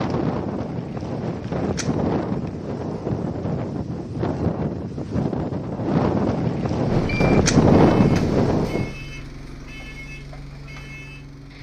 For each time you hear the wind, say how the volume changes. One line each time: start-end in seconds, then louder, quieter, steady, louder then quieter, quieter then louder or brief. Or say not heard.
0.0-8.9 louder.